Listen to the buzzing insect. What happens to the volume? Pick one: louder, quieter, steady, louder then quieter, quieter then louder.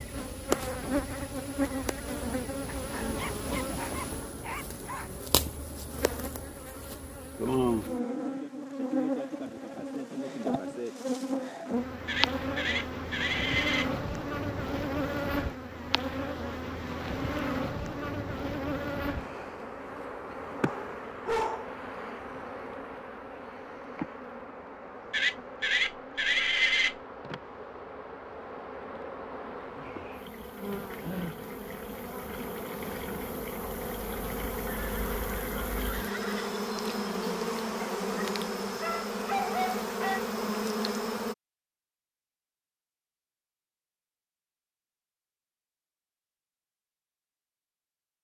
quieter then louder.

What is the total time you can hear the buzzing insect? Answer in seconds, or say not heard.
41 s.